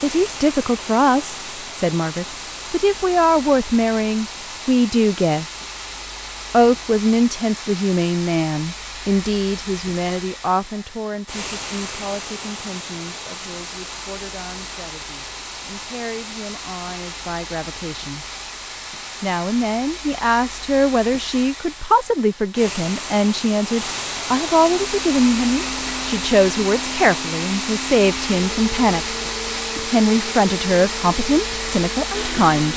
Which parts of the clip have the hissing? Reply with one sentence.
The hissing can be heard from 0.0 to 32.7 s.